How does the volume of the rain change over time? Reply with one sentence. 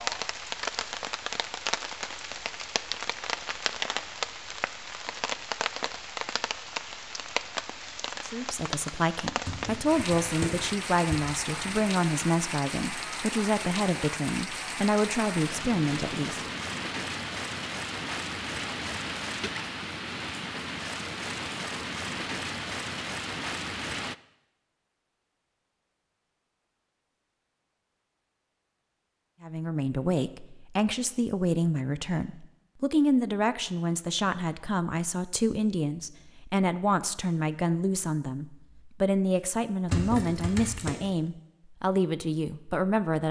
The loudness of the rain stays about the same.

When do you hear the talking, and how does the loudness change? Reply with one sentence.
The talking can be heard from 8.2 to 16.4 s, at a steady volume; and from 29.4 to 43.2 s, at a steady volume.